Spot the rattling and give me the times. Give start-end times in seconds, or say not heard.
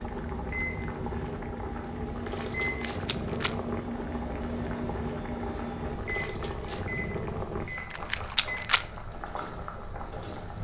2.6-3.5, 7.9-8.8.